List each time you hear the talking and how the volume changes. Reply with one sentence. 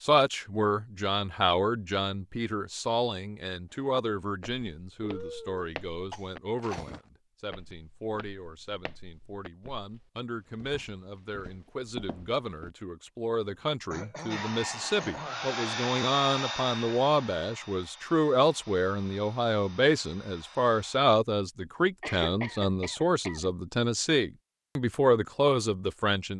The talking can be heard from 0.0 to 26.3 s, getting quieter then louder.